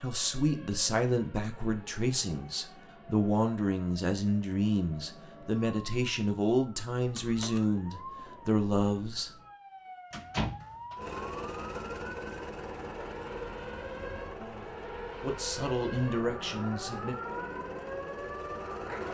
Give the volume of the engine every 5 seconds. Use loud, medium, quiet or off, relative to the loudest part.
off, off, loud, loud.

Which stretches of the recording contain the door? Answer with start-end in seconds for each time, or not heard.
7.0-7.7, 10.1-11.0.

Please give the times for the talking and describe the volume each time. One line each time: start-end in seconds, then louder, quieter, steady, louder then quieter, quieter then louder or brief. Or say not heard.
0.0-9.3 steady
14.3-17.1 brief.